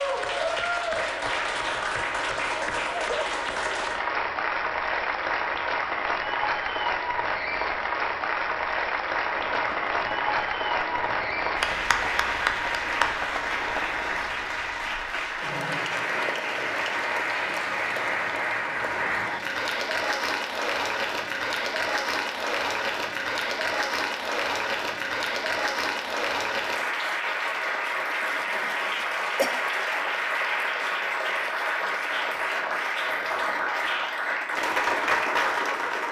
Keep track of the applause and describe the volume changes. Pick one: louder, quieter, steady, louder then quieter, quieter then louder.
steady.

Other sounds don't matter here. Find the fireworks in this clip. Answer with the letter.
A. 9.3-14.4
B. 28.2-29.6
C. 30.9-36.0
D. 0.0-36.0
A.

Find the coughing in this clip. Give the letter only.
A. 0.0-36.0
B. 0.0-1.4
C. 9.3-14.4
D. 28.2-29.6
D.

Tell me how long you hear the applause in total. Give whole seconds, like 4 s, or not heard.
36 s.